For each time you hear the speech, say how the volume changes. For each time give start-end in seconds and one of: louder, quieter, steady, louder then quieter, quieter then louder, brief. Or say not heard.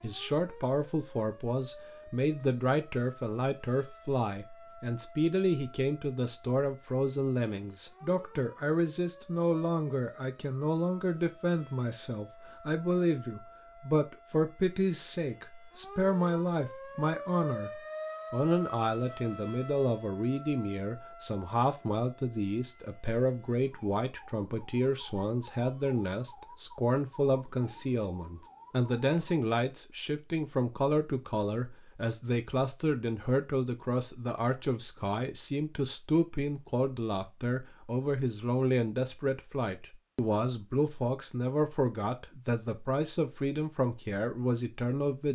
0.0-45.3 steady.